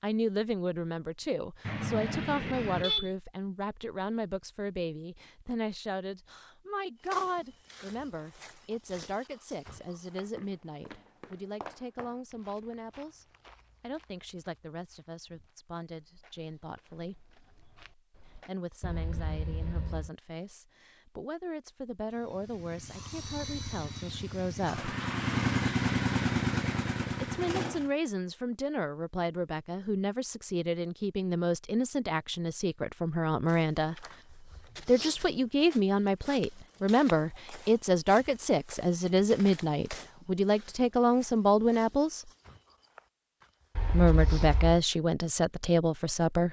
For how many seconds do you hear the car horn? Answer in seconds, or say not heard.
4 s.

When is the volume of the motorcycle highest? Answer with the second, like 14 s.
26 s.